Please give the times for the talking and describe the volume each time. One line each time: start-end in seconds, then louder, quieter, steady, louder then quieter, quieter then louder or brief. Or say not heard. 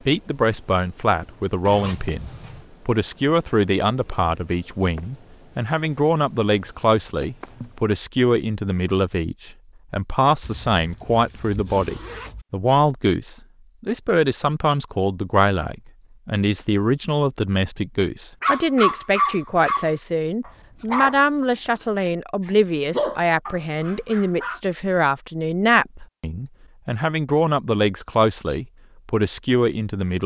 0.1-30.2 steady.